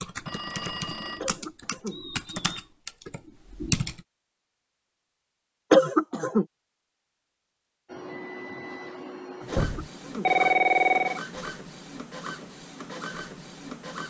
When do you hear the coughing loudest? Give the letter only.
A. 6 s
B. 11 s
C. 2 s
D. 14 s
A.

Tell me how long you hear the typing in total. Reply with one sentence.
The typing can be heard for 4 seconds in total.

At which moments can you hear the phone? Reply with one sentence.
The phone can be heard from 0.2 to 1.2 s and from 9.6 to 11.2 s.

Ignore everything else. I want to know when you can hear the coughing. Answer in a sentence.
You can hear the coughing from 1.2 to 2.0 s, from 5.7 to 6.5 s and from 9.5 to 10.3 s.